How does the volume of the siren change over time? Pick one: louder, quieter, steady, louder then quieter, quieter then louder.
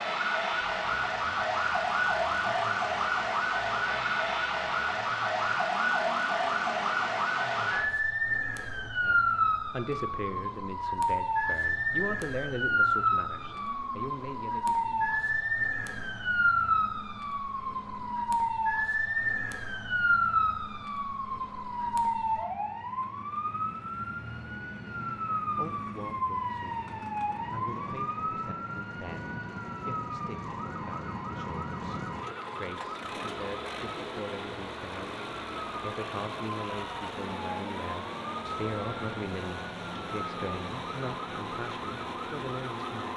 quieter.